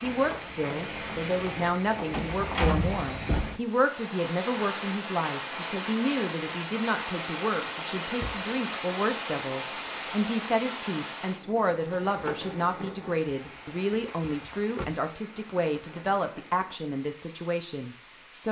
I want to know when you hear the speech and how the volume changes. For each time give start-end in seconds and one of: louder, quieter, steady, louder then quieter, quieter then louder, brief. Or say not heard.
0.0-18.4 steady.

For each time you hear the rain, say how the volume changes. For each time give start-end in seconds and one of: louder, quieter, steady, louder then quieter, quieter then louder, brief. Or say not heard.
0.0-18.4 quieter.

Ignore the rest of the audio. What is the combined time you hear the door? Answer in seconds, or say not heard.
3 s.